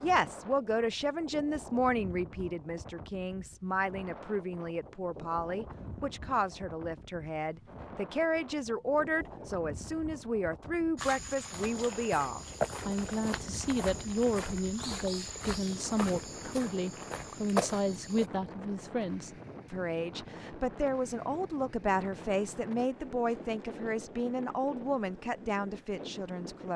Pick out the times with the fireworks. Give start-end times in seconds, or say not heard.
not heard.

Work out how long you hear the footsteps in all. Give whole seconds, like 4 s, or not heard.
7 s.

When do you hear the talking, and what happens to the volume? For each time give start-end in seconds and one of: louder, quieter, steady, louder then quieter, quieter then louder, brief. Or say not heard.
0.0-26.7 steady.